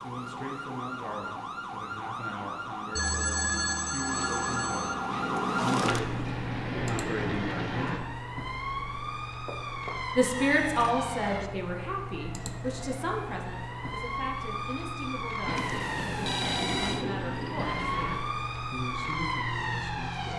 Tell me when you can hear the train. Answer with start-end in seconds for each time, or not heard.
5.0-8.0, 15.4-18.2.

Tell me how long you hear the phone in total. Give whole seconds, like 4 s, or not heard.
5 s.